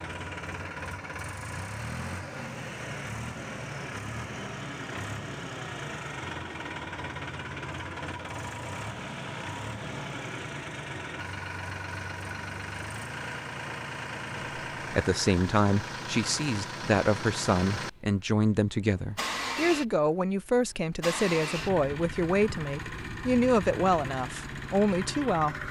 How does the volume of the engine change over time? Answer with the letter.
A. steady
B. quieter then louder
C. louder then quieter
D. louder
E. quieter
A.